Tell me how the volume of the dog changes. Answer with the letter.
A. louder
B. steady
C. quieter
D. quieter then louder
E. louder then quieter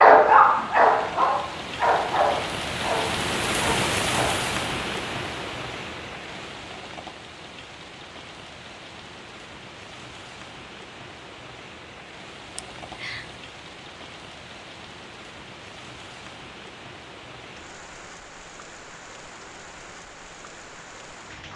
C.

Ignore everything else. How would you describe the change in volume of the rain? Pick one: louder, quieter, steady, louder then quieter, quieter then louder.
quieter.